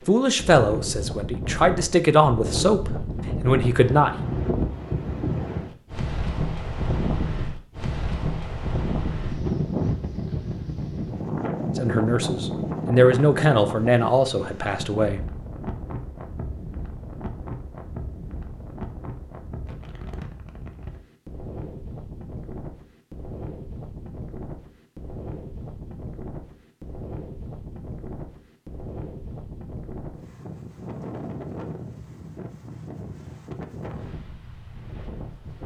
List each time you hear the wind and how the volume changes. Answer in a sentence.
The wind can be heard from 0.0 to 35.6 s, getting quieter.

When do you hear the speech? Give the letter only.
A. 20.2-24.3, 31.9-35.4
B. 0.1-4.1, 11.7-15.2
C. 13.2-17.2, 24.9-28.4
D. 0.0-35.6
B.